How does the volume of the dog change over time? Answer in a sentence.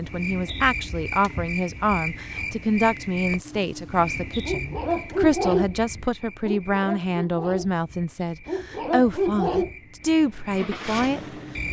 The volume of the dog goes down, then up.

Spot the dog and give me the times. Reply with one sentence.
You can hear the dog from 4.5 to 9.8 s.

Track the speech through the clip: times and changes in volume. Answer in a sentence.
The speech can be heard from 0.0 to 11.2 s, at a steady volume.